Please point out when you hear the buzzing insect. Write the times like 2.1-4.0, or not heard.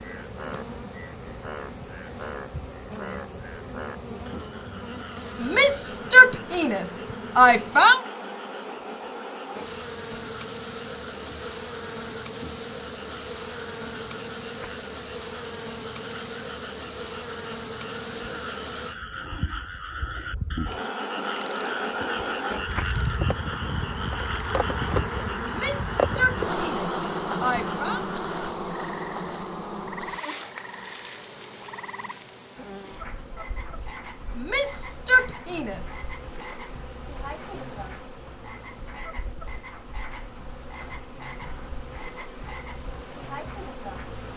0.0-44.3.